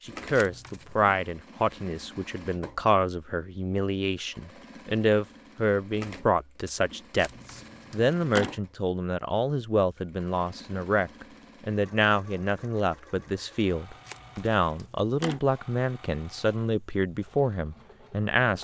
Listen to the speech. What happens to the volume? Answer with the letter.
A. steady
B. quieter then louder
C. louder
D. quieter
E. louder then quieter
A.